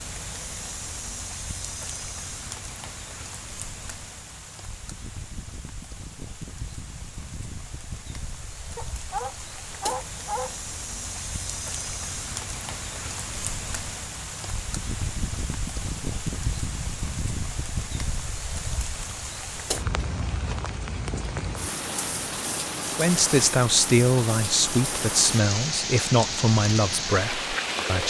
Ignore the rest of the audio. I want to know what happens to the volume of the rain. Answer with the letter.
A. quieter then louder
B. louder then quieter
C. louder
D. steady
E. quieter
C.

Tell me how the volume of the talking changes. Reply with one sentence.
The volume of the talking goes down.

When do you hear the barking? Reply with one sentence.
You can hear the barking from 8.8 to 10.7 s.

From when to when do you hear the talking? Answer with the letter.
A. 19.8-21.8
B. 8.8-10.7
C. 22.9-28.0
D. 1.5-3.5
C.